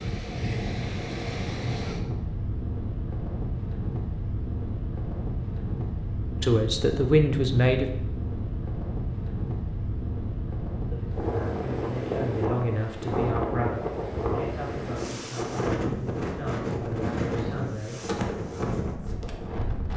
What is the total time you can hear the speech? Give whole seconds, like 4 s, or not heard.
9 s.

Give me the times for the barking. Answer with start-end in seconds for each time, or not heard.
not heard.